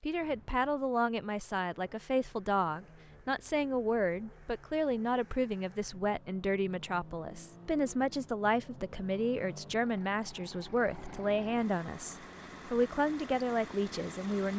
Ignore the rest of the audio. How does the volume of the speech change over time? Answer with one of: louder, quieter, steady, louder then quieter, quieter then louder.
steady.